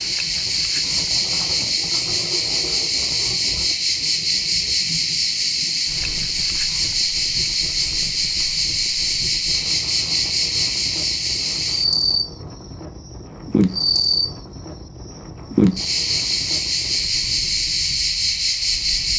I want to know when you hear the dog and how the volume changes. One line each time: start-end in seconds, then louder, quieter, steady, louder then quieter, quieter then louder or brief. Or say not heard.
not heard.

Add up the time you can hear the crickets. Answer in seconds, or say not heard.
17 s.